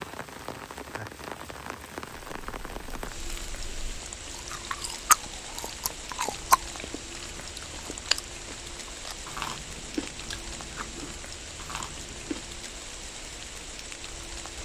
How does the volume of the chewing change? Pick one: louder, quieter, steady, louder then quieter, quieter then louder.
quieter.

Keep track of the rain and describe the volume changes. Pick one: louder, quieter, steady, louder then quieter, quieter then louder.
steady.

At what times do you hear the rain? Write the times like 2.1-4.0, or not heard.
0.0-14.6.